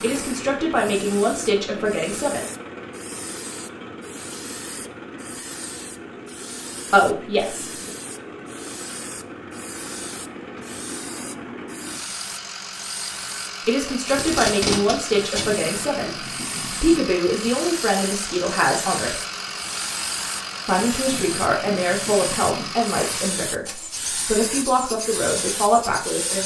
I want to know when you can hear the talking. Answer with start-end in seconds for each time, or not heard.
0.0-2.5, 6.9-7.9, 13.7-19.2, 20.6-26.4.